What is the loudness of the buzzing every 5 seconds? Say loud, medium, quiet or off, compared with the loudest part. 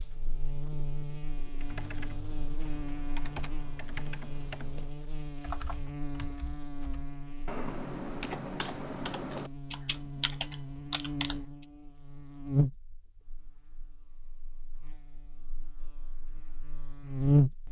quiet, quiet, medium, loud.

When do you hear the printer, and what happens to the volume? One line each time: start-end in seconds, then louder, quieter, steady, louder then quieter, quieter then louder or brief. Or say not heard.
not heard.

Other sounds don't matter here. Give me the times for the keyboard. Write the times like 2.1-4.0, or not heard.
1.6-11.4.